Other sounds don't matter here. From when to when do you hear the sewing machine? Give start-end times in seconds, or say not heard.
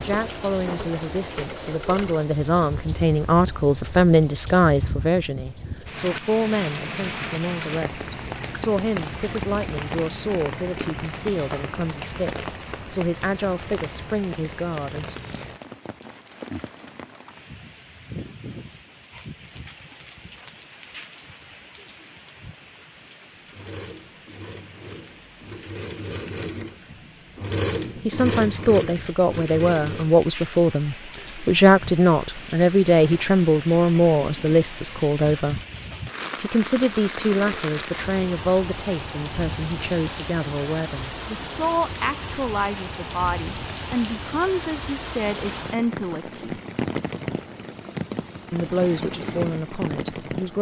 0.0-2.2, 23.5-30.1.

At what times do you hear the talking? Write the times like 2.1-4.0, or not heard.
0.0-15.2, 28.1-35.6, 36.4-46.6, 48.5-50.5.